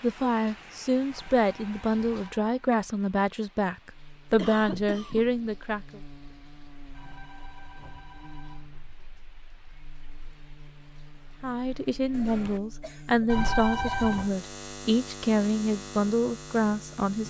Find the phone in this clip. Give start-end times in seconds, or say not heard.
1.1-2.6, 6.9-8.9, 13.2-14.3.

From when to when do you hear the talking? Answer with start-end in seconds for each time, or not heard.
0.0-6.0, 11.4-17.2.